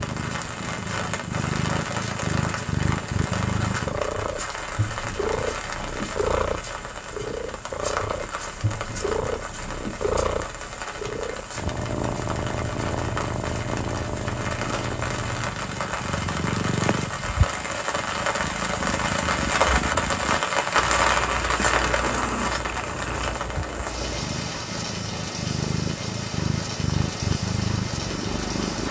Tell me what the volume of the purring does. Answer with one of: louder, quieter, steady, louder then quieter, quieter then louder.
steady.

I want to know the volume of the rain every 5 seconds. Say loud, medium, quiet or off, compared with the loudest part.
medium, medium, medium, loud, loud, medium.